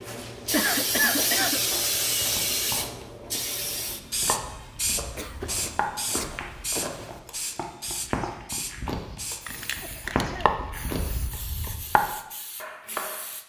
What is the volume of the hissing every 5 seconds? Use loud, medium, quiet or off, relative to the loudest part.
loud, medium, quiet.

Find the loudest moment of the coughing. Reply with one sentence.
The volume of the coughing peaks at 1 second.